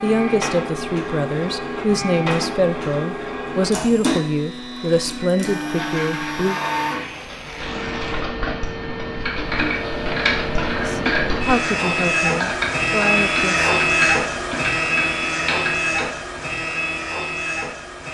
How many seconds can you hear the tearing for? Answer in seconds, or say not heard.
2 s.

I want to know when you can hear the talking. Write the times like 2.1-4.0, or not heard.
0.0-6.6, 10.8-13.7.